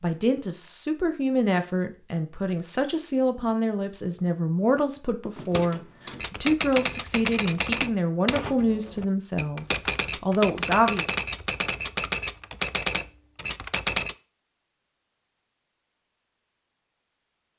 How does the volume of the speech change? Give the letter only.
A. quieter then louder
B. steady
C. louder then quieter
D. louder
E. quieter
B.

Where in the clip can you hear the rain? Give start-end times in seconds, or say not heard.
not heard.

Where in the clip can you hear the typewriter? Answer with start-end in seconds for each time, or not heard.
6.1-14.2.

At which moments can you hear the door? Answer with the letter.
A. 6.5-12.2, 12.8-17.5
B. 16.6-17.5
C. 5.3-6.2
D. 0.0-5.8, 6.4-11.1
C.